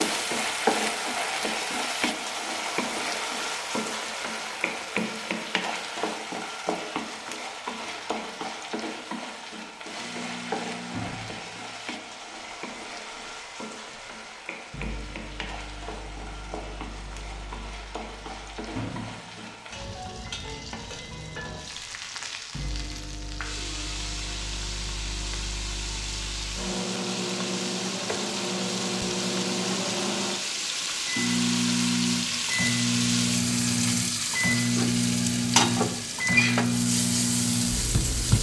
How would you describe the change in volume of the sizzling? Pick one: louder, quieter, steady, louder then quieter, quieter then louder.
quieter then louder.